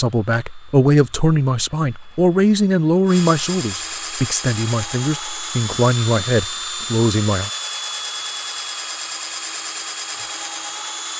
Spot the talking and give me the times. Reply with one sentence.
You can hear the talking from 0.0 to 7.5 s.